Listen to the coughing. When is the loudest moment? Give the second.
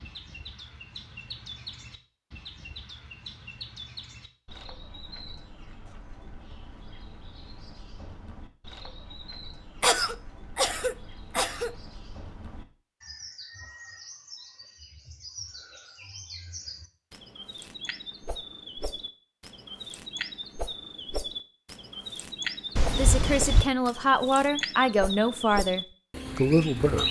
10 s.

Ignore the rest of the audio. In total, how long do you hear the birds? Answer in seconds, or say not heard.
27 s.